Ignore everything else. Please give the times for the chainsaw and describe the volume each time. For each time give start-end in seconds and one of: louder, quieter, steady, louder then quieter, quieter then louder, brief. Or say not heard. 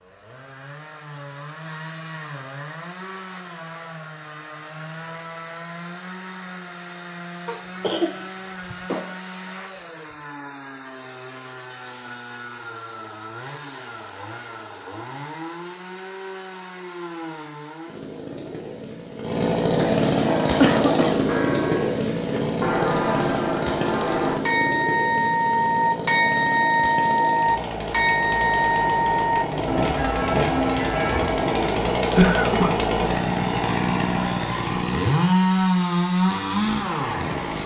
0.0-37.6 louder.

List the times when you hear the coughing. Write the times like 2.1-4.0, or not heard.
7.5-9.1, 19.8-21.4, 31.9-33.2.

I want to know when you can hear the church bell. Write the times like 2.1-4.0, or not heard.
20.2-31.7.